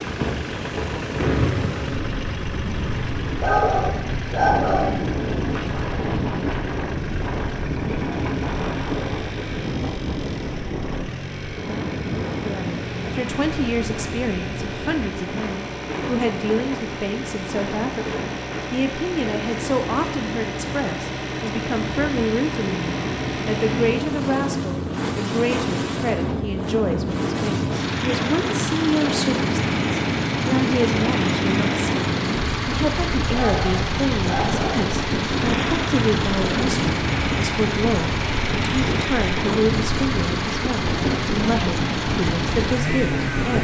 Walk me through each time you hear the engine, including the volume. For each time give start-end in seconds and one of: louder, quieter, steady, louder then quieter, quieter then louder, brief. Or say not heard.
0.0-43.5 louder.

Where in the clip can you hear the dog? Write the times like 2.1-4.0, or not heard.
3.4-5.0, 33.3-34.9.